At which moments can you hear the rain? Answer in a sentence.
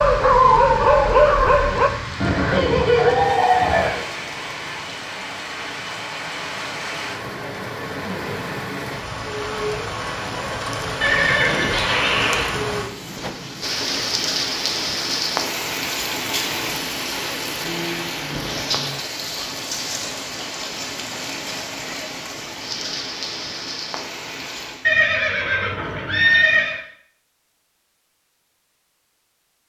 The rain can be heard from 0.0 to 24.9 s.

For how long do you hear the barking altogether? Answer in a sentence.
You can hear the barking for 2 seconds altogether.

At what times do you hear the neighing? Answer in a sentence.
You can hear the neighing from 2.2 to 4.0 s, from 11.0 to 12.6 s and from 24.9 to 26.8 s.